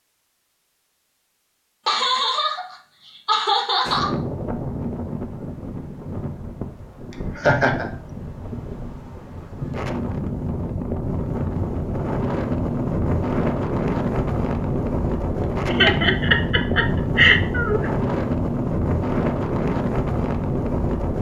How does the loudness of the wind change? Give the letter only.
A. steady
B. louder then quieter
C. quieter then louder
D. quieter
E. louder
E.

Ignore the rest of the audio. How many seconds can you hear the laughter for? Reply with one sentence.
You can hear the laughter for 5 seconds altogether.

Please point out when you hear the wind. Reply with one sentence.
The wind can be heard from 3.8 to 21.1 s.